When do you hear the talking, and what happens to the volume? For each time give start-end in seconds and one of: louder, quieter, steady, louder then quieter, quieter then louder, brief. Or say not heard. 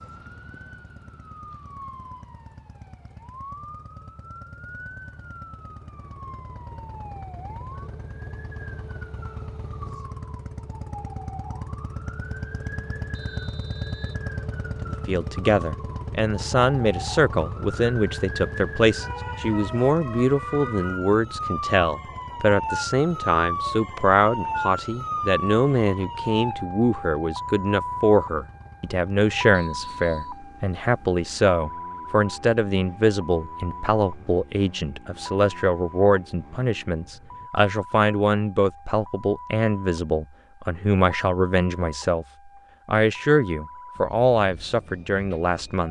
14.8-42.2 steady
42.9-45.8 brief.